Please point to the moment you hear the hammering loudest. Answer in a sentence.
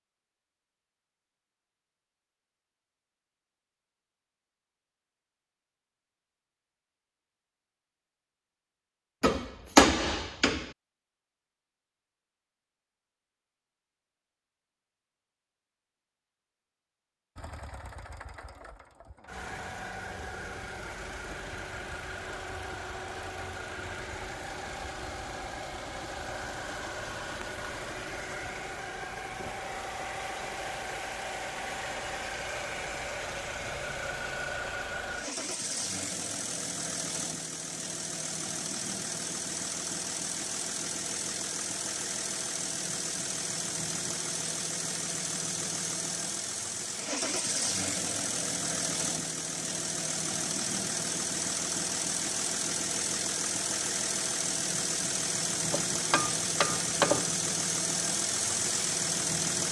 The volume of the hammering peaks at 10 seconds.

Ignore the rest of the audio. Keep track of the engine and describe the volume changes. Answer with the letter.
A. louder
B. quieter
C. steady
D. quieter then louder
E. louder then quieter
A.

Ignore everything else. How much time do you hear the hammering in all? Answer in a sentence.
You can hear the hammering for 3 seconds altogether.